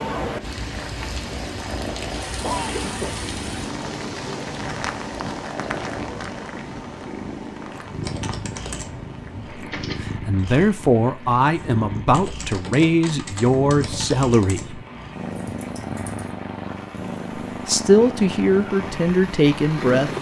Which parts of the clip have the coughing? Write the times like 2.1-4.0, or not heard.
2.4-3.3.